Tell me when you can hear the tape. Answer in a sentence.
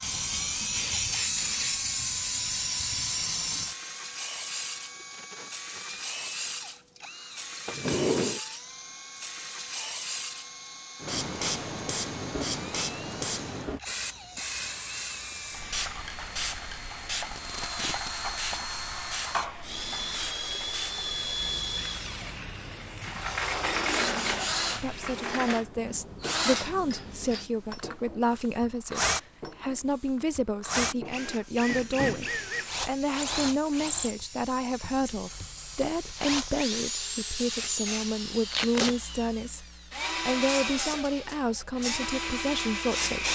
You can hear the tape from 4.9 to 6.7 s, from 17.2 to 18.7 s and from 38.5 to 39.0 s.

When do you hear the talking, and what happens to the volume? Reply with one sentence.
The talking can be heard from 24.8 to 43.3 s, at a steady volume.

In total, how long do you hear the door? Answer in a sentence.
You can hear the door for 5 seconds altogether.